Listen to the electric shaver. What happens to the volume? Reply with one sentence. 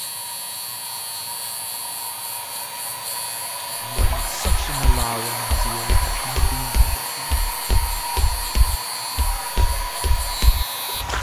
The loudness of the electric shaver stays about the same.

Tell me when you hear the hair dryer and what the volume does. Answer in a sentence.
The hair dryer can be heard from 0.0 to 11.1 s, getting louder.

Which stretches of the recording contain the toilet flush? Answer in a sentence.
You can hear the toilet flush from 4.0 to 6.6 s.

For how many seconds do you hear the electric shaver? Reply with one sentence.
The electric shaver can be heard for 11 seconds in total.